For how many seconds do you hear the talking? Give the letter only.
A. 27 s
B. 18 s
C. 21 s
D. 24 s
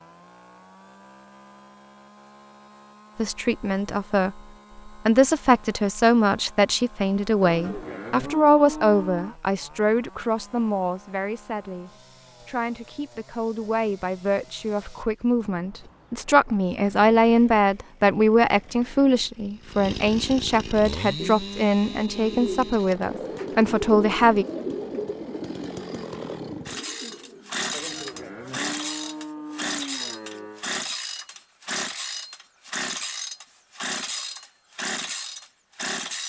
C.